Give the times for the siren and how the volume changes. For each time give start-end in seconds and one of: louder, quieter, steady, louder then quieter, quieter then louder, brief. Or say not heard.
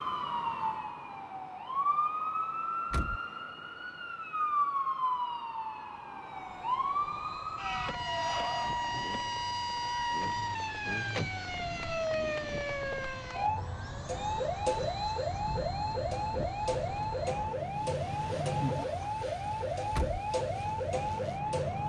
0.0-21.8 steady.